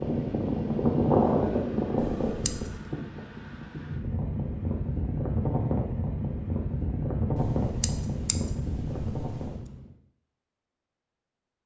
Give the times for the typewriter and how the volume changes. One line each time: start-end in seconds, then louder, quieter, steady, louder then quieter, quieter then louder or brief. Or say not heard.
not heard.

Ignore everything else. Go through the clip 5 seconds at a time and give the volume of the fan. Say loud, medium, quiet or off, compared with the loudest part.
loud, loud, off.